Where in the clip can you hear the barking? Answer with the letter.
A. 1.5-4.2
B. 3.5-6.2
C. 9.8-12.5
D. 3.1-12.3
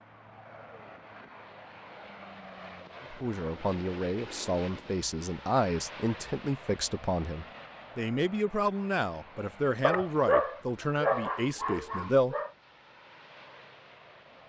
C.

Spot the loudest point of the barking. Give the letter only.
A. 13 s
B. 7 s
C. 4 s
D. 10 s
D.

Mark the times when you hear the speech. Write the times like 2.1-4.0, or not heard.
3.1-12.3.